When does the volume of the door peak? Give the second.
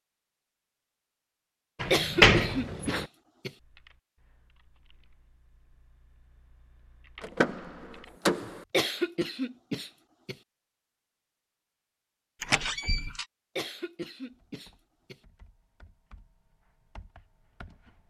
2 s.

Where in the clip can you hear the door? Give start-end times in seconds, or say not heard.
1.8-3.0, 7.2-8.7, 12.4-13.2.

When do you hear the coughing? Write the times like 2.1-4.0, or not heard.
1.9-3.5, 8.7-10.3, 13.6-15.2.